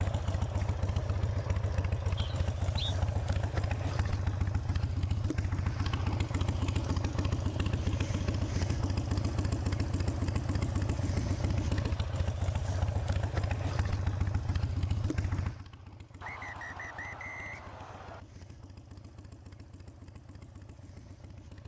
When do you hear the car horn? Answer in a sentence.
The car horn can't be heard in this clip.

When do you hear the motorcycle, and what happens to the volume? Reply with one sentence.
The motorcycle can be heard from 0.0 to 21.6 s, getting quieter.